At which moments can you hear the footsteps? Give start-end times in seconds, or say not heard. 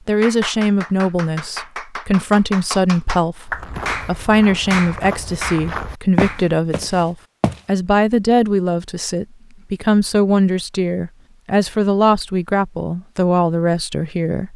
3.5-7.6.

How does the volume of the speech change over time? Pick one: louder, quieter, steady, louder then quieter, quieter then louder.
steady.